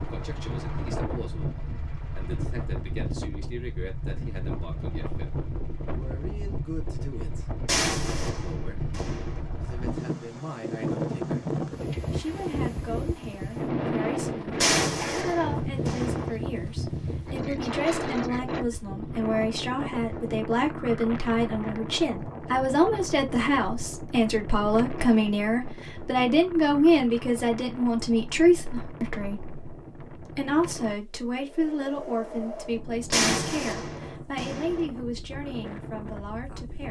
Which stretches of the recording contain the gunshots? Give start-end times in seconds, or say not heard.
7.7-9.4, 14.6-16.4, 33.1-34.9.